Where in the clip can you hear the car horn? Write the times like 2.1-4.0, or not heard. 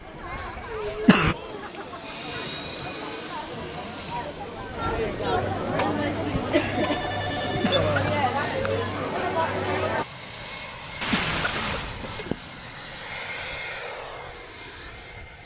not heard.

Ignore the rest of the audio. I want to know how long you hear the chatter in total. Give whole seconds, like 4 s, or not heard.
10 s.